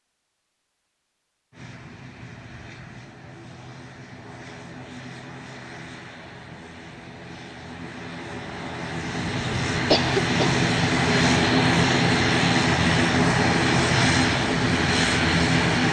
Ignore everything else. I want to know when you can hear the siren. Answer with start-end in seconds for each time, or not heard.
not heard.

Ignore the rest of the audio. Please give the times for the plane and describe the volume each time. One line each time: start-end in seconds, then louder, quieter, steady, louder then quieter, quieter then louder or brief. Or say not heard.
1.5-15.8 louder.